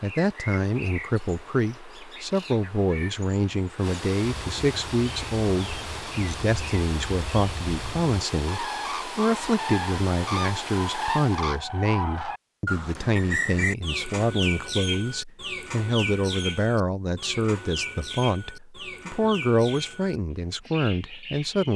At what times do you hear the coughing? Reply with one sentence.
You can't hear the coughing here.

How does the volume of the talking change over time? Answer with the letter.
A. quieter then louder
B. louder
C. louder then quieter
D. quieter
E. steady
E.